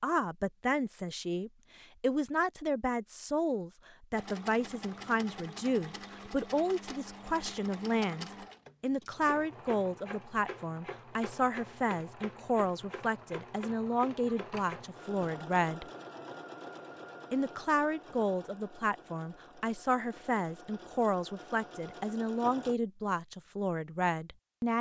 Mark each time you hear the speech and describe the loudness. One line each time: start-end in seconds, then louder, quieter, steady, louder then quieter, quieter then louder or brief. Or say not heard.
0.0-15.8 steady
17.3-24.7 steady.